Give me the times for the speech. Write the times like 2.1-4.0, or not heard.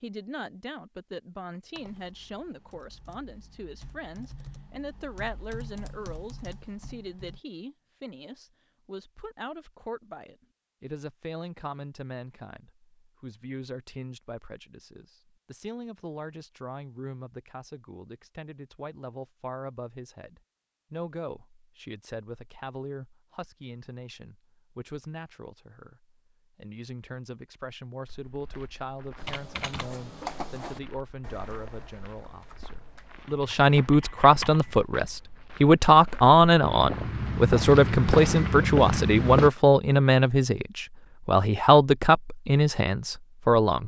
0.0-43.8.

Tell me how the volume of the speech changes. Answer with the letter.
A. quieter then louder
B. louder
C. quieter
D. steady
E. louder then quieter
B.